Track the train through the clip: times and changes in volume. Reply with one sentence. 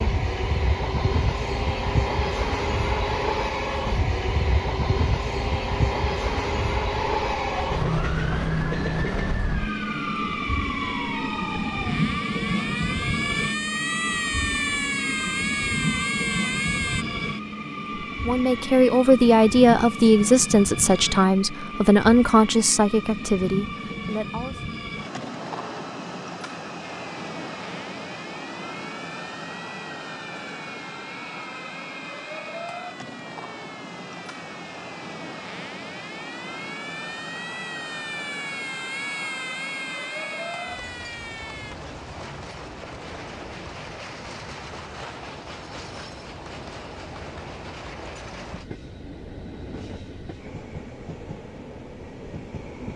The train can be heard from 0.0 to 52.9 s, getting quieter.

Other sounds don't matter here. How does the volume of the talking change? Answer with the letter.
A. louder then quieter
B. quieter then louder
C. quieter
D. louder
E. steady
C.